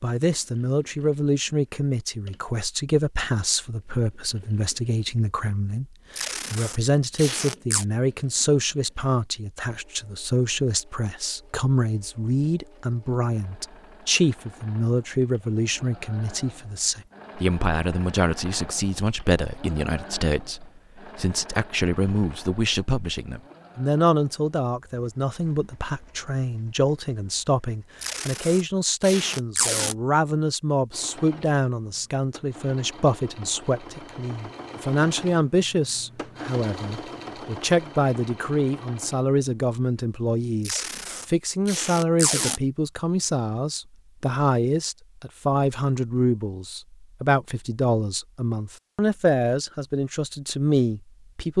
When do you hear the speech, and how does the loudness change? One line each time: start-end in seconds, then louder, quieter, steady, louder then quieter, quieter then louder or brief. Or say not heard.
0.0-51.5 steady.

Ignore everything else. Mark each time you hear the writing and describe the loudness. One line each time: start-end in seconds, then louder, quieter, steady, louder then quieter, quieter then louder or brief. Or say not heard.
not heard.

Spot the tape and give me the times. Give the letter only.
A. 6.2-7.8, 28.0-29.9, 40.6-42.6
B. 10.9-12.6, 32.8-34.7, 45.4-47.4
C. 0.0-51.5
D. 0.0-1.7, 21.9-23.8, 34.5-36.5
A.